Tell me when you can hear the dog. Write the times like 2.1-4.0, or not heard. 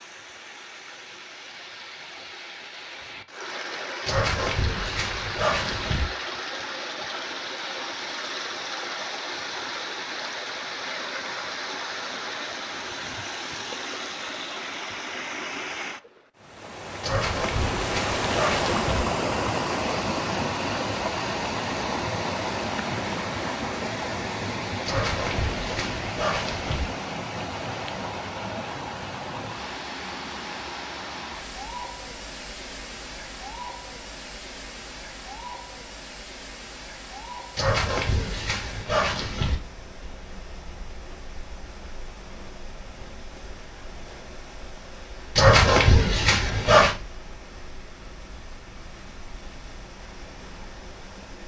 4.0-6.0, 17.0-19.1, 24.9-26.9, 37.5-39.5, 45.4-47.0.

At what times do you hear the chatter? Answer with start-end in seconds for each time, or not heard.
not heard.